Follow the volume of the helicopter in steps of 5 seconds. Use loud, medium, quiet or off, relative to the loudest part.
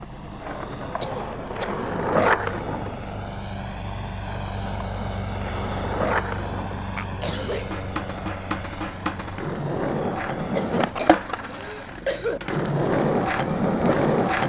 loud, loud, medium.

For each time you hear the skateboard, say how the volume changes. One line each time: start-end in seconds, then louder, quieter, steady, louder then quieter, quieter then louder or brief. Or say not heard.
0.0-14.4 quieter then louder.